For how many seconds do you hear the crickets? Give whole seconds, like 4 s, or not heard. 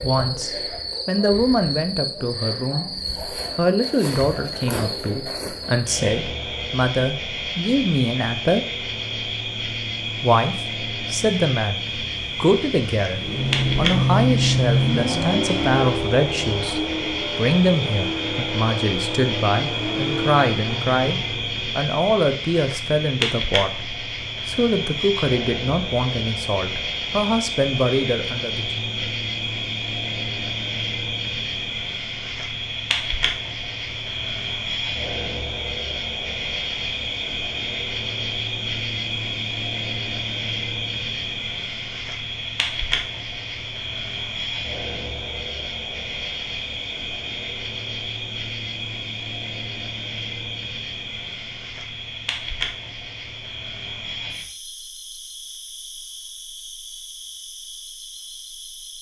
59 s.